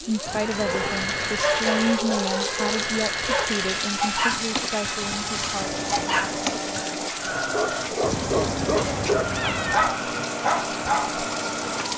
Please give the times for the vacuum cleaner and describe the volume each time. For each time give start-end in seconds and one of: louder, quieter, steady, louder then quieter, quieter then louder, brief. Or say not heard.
0.0-11.9 steady.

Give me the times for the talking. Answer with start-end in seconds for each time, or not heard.
0.0-5.7.